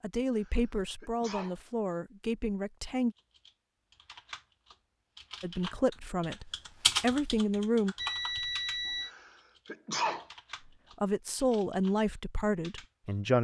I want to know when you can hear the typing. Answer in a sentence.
You can hear the typing from 3.1 to 13.2 s.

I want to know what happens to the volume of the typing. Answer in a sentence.
The loudness of the typing goes up, then down.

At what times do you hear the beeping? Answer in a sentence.
The beeping can be heard from 8.0 to 9.1 s.